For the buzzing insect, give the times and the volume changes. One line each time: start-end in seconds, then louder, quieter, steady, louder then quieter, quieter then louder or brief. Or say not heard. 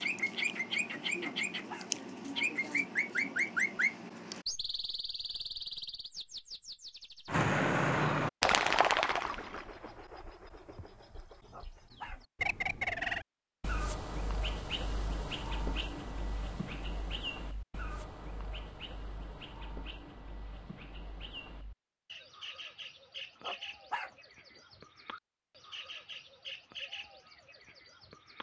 not heard.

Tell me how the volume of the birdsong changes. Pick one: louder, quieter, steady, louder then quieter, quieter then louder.
quieter.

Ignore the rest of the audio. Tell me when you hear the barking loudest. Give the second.
24 s.